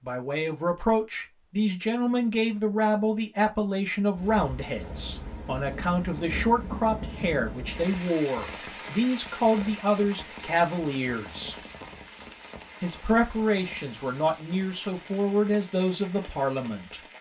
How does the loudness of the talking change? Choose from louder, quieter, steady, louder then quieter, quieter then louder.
steady.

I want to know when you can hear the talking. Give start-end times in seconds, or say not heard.
0.0-11.6, 12.8-17.0.